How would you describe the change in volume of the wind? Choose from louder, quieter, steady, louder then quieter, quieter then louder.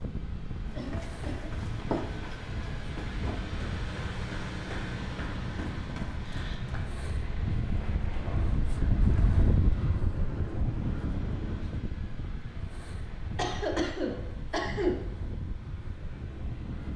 louder then quieter.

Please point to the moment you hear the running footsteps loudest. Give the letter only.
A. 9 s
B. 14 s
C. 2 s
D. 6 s
C.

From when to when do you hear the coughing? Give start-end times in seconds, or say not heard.
0.8-2.0, 6.2-6.7, 13.3-14.9.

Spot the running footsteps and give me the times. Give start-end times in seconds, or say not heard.
0.7-7.0.